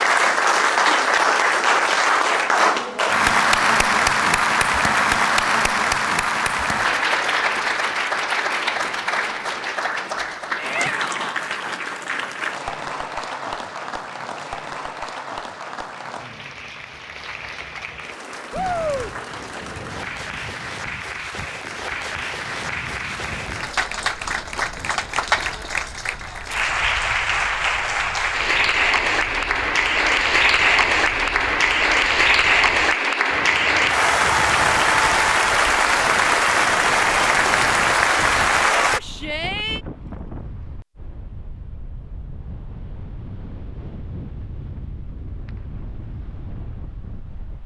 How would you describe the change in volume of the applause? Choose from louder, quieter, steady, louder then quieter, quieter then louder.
quieter then louder.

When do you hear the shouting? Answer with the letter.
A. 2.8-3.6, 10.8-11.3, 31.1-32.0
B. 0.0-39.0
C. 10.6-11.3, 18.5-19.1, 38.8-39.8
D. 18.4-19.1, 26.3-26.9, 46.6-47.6
C.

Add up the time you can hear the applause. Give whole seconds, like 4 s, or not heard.
39 s.